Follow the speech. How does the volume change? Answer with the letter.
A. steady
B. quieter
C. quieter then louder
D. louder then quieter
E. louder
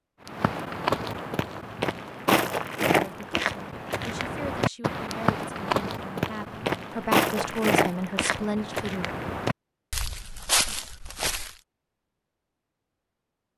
E.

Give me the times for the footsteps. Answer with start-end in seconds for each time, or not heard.
0.2-11.6.